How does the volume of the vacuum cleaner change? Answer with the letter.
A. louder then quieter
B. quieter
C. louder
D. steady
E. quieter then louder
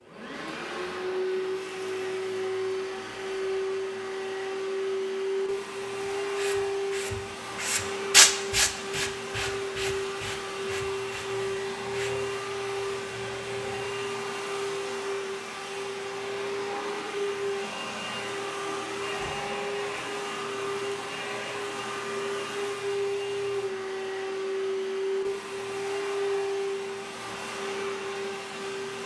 D.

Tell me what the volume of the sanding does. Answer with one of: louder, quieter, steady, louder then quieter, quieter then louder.
louder then quieter.